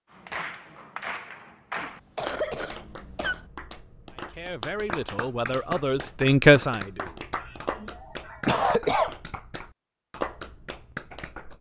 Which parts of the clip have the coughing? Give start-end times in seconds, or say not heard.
1.8-3.5, 7.4-9.2.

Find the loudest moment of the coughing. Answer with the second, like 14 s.
9 s.